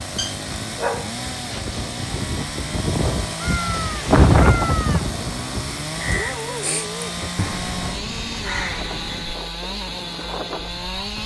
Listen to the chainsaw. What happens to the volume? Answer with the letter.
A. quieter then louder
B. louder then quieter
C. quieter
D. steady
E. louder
D.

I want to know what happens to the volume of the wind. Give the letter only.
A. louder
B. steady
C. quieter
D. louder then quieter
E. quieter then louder
D.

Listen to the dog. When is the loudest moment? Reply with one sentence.
The volume of the dog peaks at 1 second.